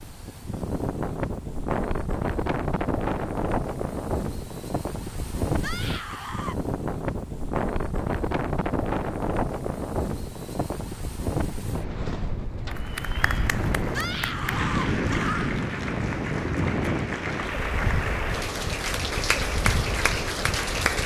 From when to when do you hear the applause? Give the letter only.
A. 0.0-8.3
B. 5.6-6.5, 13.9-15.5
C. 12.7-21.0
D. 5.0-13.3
C.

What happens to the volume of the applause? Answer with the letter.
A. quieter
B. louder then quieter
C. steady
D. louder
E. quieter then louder
D.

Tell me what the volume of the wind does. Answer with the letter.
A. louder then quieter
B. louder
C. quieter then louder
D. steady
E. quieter
D.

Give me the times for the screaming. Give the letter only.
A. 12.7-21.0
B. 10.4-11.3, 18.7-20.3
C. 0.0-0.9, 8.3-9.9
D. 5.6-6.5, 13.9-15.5
D.